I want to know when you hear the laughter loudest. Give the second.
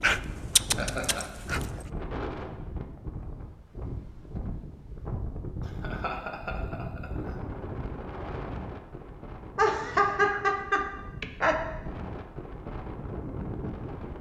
10 s.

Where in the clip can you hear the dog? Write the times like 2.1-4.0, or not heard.
0.0-1.9.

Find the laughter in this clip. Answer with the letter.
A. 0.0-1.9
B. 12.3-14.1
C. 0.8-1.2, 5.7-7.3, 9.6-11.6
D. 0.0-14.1
C.